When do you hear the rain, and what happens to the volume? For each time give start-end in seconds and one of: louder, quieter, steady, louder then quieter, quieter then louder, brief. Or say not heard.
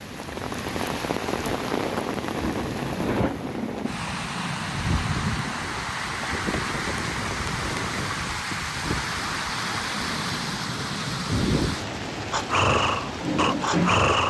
0.0-14.2 steady.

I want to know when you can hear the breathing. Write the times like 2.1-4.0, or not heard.
12.3-14.2.